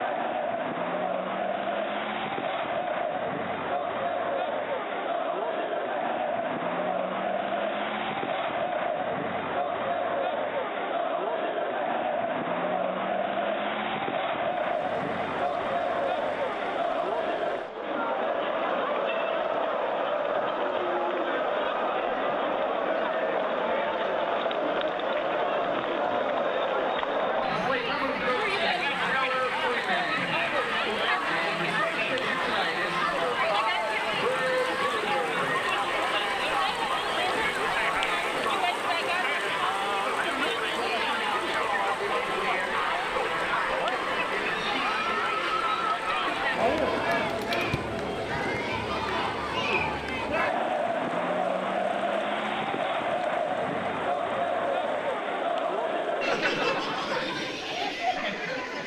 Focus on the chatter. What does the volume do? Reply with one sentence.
The volume of the chatter stays about the same.